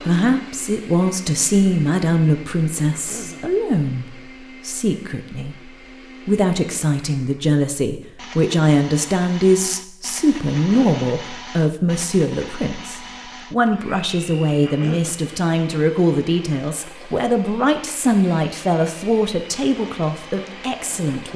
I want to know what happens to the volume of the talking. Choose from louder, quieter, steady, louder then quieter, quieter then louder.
steady.